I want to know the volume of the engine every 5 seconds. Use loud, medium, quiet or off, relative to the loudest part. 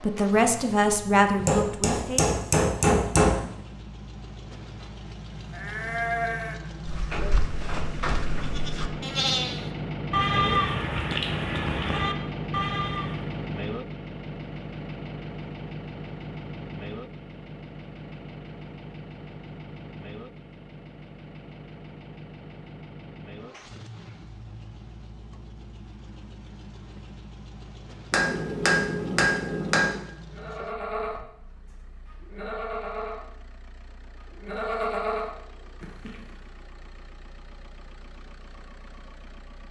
medium, loud, loud, medium, medium, quiet, quiet, quiet.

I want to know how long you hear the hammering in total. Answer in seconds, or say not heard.
4 s.